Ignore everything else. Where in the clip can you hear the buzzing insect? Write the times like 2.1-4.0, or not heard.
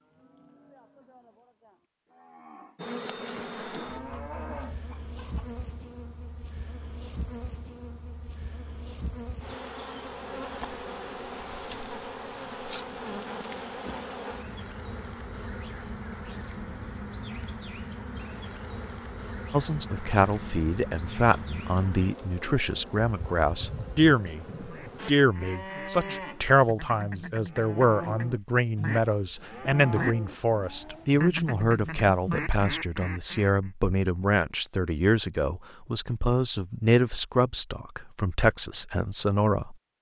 2.8-25.1.